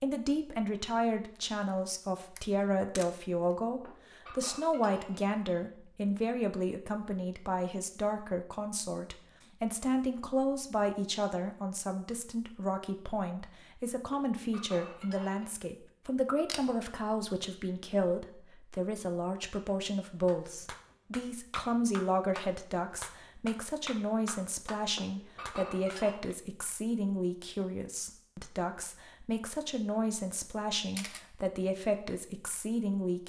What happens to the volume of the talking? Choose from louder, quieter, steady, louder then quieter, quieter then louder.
steady.